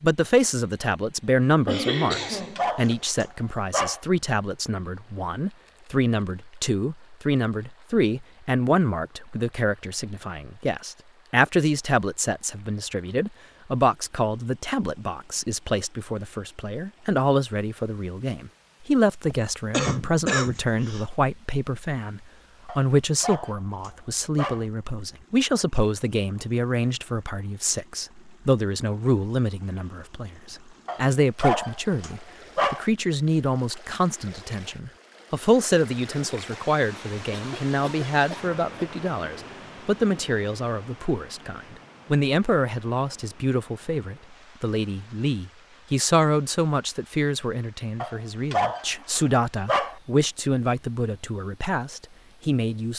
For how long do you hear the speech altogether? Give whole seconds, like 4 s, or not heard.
53 s.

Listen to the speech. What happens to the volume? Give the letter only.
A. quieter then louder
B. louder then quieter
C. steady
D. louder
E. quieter
C.